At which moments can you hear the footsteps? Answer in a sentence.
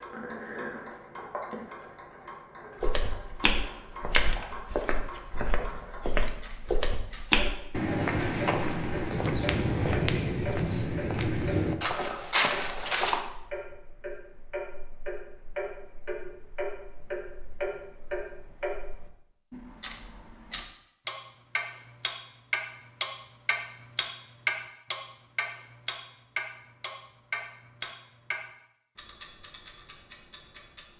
The footsteps can be heard from 2.8 to 13.2 s.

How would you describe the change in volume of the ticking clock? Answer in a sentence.
The loudness of the ticking clock goes up.